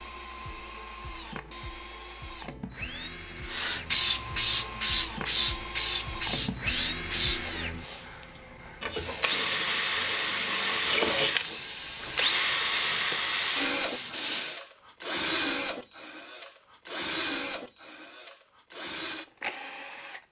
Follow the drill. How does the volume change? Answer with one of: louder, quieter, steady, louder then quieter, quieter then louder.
louder then quieter.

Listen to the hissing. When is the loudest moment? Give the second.
4 s.